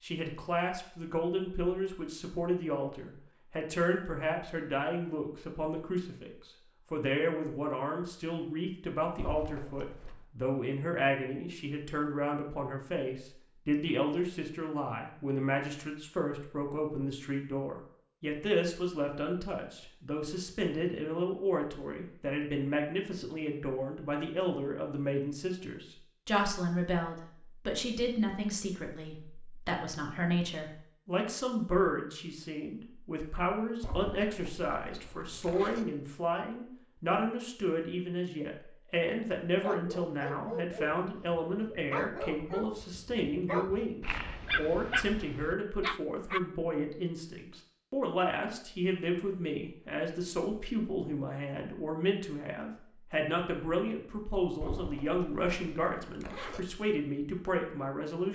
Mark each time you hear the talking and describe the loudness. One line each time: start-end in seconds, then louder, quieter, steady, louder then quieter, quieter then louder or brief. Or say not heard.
0.0-58.3 steady.